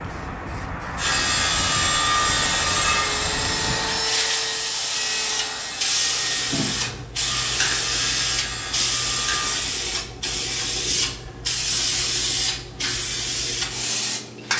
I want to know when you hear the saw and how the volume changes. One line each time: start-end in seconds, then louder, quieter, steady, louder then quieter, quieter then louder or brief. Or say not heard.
0.9-9.7 quieter.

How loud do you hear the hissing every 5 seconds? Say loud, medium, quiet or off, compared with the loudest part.
medium, loud, loud.